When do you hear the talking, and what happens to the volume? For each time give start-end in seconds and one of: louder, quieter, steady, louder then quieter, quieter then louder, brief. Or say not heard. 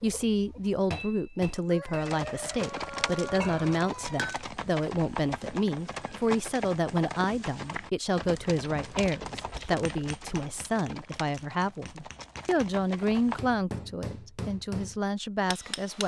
0.0-16.0 steady.